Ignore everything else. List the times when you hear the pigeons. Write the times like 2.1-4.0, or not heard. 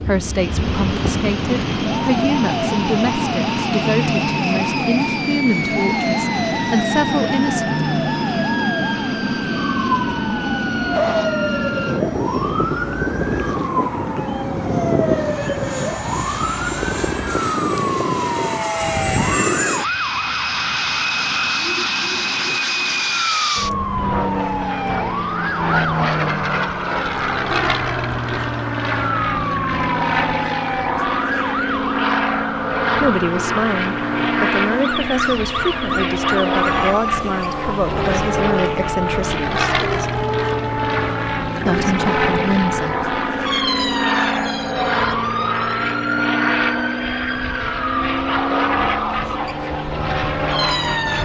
not heard.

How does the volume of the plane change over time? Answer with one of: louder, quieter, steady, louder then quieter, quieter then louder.
steady.